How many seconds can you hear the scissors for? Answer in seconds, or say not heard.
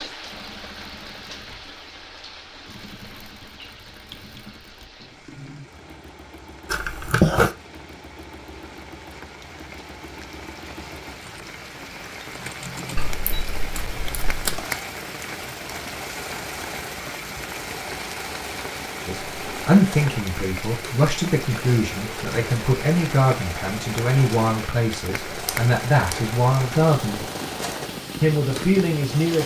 3 s.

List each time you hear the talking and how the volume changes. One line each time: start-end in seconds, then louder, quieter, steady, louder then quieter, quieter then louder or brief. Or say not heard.
19.1-27.2 steady
28.2-29.4 brief.